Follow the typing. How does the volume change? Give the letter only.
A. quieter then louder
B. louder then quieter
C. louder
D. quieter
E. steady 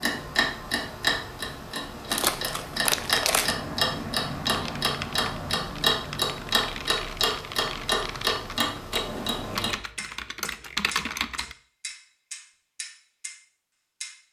C.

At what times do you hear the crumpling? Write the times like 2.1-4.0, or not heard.
2.1-3.5.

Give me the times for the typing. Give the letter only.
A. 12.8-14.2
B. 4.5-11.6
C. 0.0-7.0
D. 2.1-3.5
B.